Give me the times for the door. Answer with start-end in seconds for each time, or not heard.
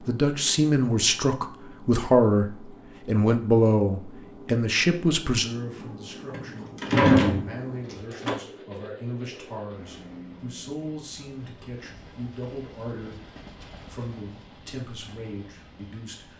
6.3-8.3.